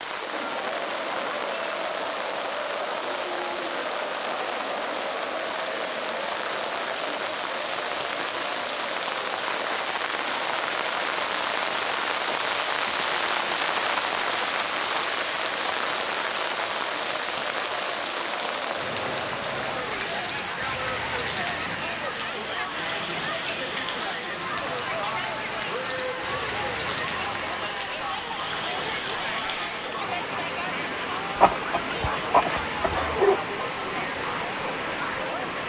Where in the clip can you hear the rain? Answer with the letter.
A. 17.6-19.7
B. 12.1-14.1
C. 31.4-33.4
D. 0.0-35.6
D.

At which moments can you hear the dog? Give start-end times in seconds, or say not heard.
31.4-33.4.